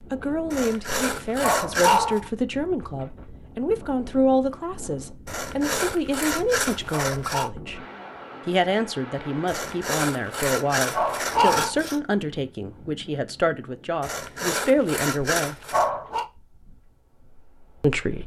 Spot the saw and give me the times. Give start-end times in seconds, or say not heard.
0.5-2.2, 5.2-7.5, 9.4-12.0, 14.0-15.9.